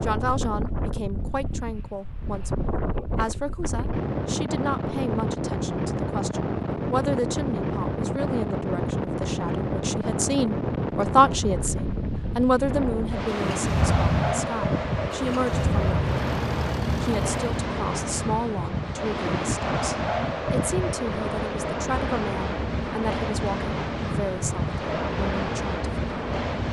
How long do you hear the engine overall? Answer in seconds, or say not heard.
4 s.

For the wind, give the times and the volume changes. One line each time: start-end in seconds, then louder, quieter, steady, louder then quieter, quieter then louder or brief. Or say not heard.
0.0-26.6 steady.